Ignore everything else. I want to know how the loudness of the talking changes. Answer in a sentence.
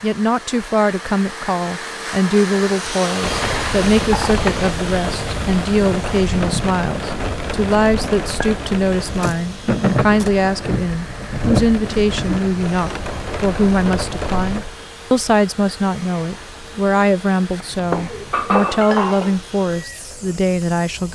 The volume of the talking stays about the same.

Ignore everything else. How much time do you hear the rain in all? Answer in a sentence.
You can hear the rain for 18 seconds altogether.